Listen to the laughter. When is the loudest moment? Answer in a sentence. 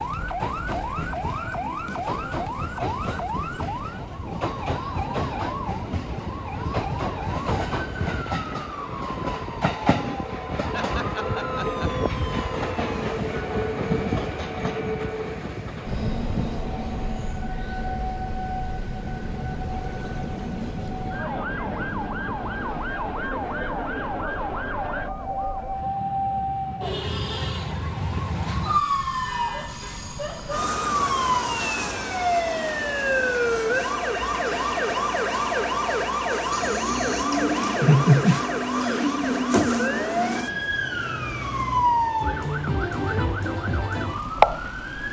The loudest moment of the laughter is at 38 seconds.